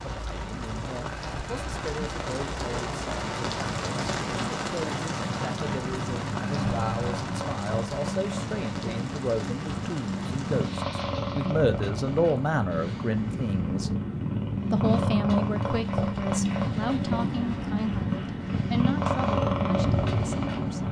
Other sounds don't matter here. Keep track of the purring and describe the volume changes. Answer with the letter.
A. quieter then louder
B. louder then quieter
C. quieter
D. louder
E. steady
D.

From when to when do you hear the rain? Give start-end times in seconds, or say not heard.
0.0-11.6.